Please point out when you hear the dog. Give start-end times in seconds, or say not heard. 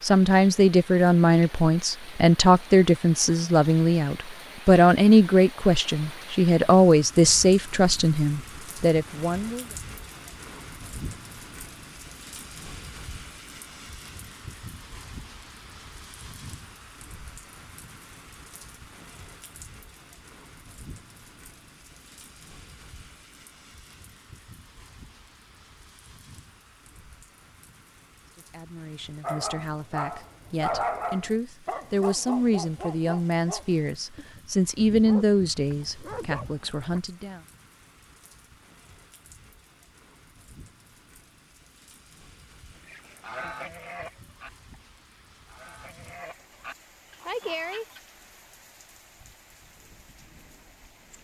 29.2-37.0.